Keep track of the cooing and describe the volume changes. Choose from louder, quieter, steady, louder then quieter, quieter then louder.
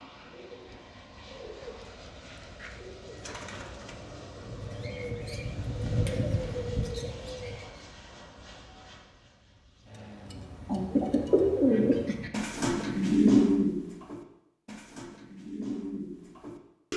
louder then quieter.